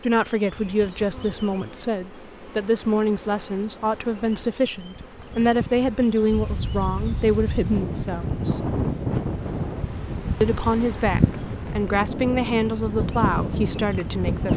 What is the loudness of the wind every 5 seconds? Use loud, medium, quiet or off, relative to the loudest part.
off, loud, loud.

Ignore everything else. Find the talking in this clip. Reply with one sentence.
The talking can be heard from 0.0 to 8.7 s and from 10.4 to 14.5 s.